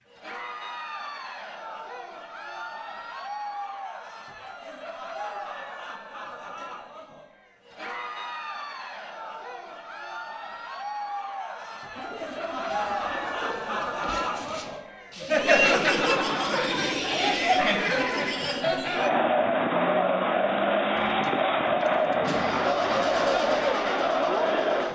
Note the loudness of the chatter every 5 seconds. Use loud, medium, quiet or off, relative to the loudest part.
quiet, quiet, medium, loud, loud.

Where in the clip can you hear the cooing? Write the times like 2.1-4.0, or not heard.
11.9-14.8.